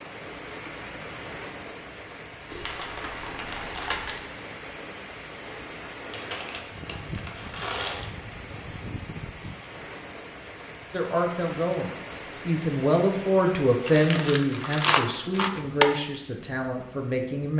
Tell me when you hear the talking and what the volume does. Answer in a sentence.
The talking can be heard from 10.9 to 17.5 s, getting louder then quieter.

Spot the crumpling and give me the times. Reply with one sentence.
You can hear the crumpling from 2.5 to 4.2 s, from 6.1 to 8.1 s and from 13.8 to 15.8 s.